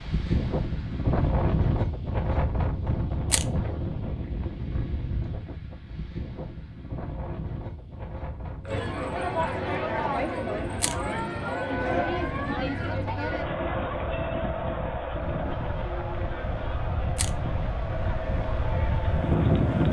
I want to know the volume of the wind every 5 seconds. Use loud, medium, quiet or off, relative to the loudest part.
loud, medium, medium, loud.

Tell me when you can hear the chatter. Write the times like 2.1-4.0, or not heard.
8.7-19.8.